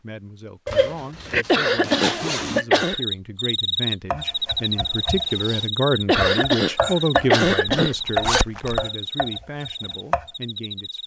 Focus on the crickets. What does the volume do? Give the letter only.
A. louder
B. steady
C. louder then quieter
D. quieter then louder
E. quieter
E.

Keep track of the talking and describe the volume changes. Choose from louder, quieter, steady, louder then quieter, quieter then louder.
louder then quieter.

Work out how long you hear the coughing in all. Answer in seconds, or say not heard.
4 s.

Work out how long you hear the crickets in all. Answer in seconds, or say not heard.
8 s.